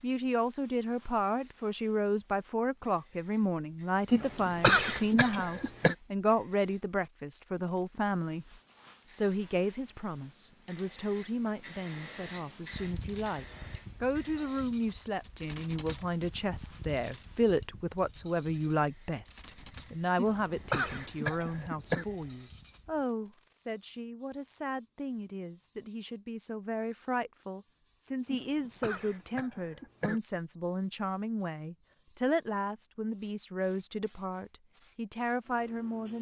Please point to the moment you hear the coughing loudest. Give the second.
5 s.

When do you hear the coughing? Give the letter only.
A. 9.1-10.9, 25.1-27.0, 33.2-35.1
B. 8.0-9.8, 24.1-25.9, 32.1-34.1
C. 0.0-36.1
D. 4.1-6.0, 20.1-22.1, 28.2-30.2
D.